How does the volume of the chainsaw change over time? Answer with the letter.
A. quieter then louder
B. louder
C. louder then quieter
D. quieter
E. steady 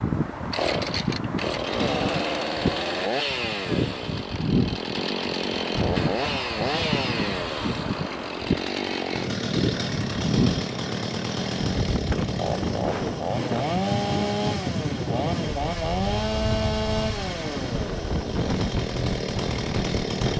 E.